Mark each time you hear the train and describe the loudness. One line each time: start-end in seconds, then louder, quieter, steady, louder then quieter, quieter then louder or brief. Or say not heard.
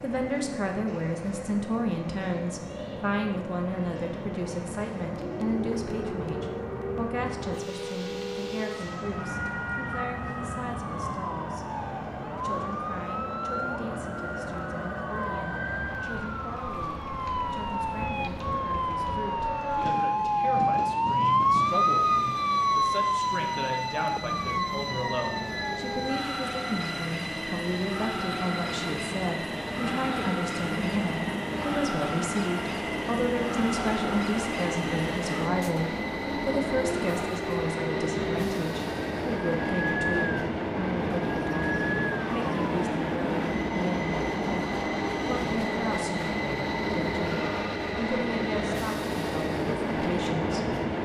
0.0-51.0 louder.